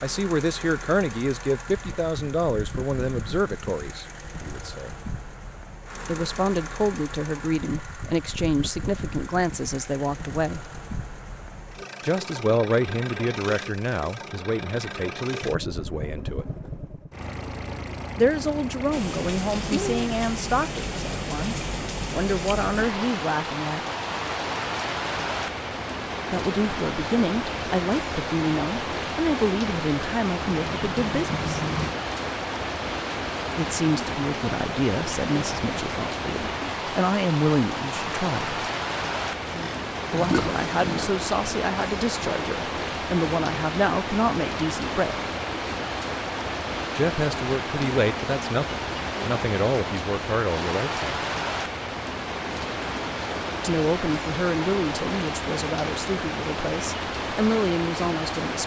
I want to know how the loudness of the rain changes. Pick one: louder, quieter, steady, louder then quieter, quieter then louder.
steady.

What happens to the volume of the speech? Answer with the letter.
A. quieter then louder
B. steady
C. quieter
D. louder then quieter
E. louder
B.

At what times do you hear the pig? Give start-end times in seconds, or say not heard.
39.5-41.1.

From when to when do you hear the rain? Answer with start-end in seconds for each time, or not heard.
18.9-58.6.